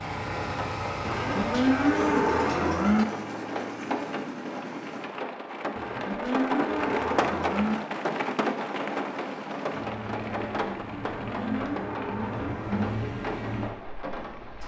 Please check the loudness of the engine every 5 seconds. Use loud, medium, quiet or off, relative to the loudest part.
loud, medium, loud.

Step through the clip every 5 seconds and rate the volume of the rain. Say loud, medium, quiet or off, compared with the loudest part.
medium, loud, medium.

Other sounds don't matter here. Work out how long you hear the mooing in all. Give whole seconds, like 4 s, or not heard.
6 s.